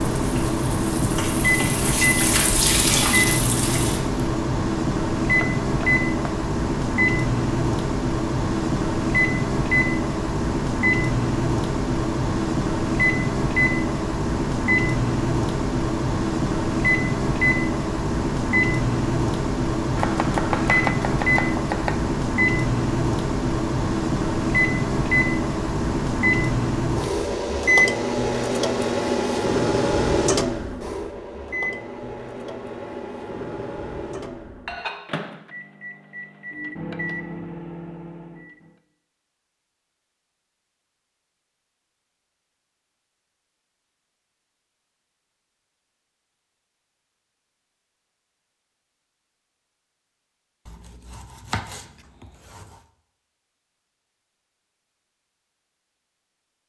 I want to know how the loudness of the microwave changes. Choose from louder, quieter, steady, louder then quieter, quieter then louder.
quieter.